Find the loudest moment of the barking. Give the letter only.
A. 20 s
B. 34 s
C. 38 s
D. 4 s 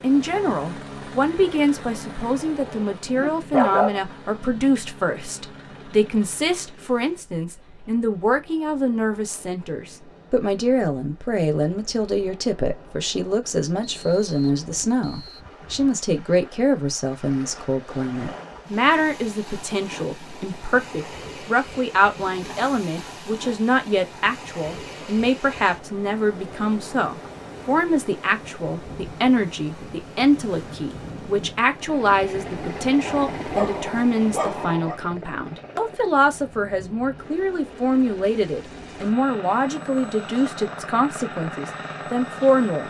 D.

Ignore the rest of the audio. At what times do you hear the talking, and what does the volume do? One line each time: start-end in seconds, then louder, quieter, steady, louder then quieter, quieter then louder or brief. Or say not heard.
0.0-42.8 steady.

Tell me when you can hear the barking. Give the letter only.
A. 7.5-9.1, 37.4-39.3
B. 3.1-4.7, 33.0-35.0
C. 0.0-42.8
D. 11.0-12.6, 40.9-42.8
B.